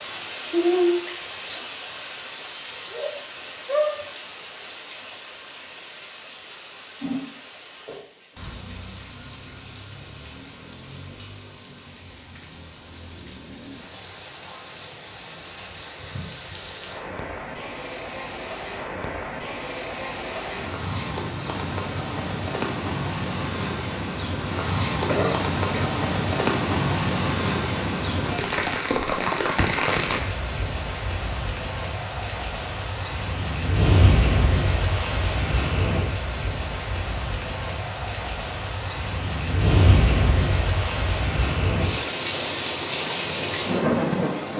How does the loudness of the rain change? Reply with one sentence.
The volume of the rain goes down, then up.